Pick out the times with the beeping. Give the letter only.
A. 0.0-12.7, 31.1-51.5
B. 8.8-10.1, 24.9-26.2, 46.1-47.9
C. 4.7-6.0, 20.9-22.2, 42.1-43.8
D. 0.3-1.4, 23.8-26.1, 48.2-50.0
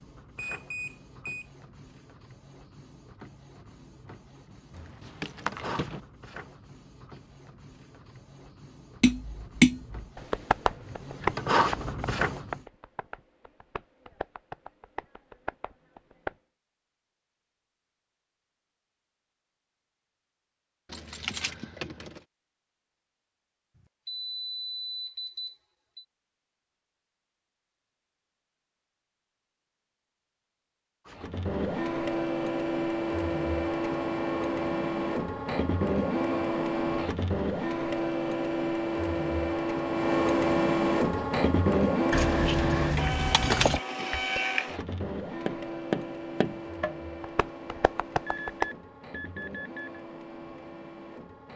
D.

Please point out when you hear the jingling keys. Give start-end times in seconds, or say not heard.
4.7-6.0, 20.9-22.2, 42.1-43.8.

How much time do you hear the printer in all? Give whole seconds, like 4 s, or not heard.
33 s.